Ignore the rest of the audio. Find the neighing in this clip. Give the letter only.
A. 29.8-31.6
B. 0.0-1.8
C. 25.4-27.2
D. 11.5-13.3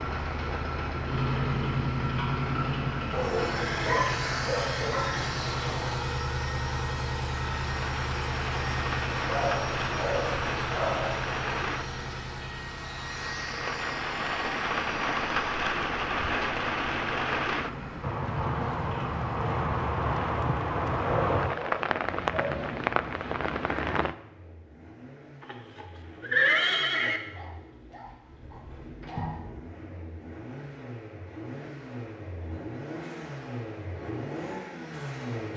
C.